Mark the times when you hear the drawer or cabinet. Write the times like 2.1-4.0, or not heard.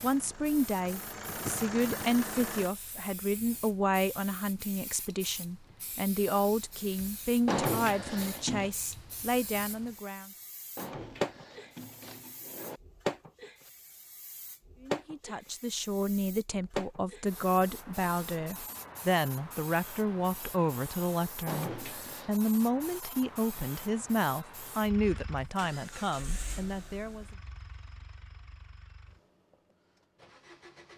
7.5-8.7, 10.8-12.8, 21.4-22.3.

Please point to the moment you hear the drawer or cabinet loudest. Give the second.
8 s.